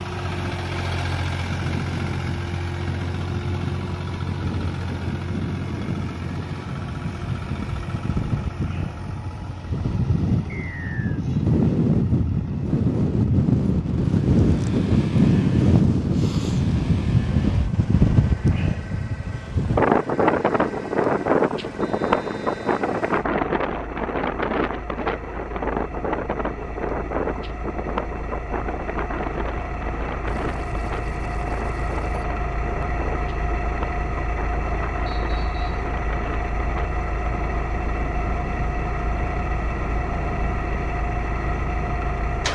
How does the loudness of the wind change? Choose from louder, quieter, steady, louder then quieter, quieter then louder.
louder then quieter.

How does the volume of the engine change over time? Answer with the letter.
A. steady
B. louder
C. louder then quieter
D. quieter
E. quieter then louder
E.